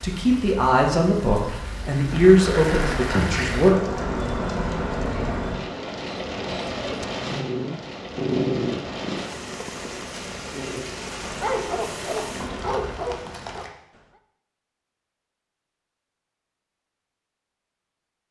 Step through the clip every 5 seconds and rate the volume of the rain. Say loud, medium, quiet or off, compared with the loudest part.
loud, loud, medium, off.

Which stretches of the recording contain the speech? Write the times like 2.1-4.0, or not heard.
0.0-3.8.